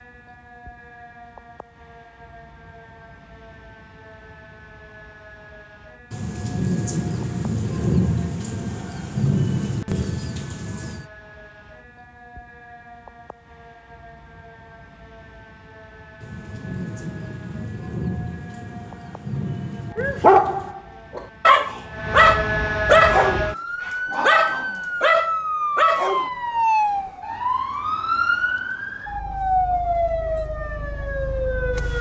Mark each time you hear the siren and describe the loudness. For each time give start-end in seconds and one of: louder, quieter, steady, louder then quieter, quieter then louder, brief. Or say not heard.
0.0-31.9 louder.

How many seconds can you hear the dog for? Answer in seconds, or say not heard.
6 s.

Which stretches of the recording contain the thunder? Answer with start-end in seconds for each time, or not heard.
6.1-11.1, 16.2-20.8.